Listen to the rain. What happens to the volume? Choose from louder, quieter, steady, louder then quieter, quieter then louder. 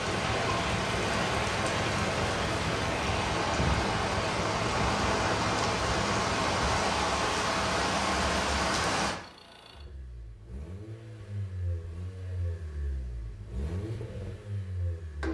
steady.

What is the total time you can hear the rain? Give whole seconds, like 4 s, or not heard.
9 s.